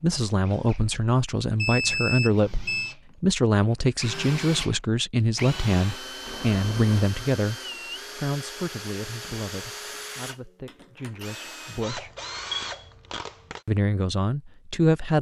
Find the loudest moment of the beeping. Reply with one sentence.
The volume of the beeping peaks at 2 seconds.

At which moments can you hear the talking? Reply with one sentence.
You can hear the talking from 0.0 to 7.5 s, from 8.2 to 12.1 s and from 13.7 to 15.1 s.